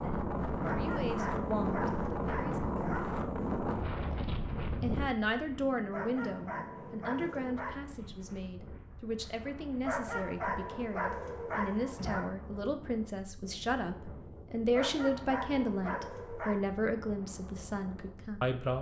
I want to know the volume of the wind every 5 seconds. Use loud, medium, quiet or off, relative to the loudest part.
loud, quiet, quiet, quiet.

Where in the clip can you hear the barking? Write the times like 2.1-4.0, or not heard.
0.6-3.1, 5.9-7.8, 9.8-12.3, 14.7-16.6.